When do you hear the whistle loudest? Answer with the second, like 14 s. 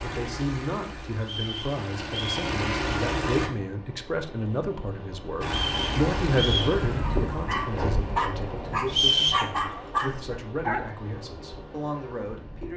9 s.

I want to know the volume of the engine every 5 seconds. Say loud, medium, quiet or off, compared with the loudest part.
loud, loud, off.